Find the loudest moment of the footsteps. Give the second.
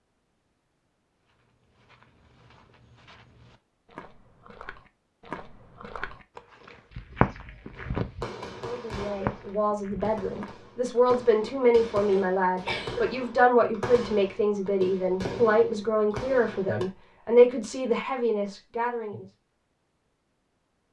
7 s.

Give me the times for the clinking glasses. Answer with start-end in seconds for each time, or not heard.
not heard.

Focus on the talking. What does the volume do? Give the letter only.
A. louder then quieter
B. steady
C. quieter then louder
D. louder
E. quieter
D.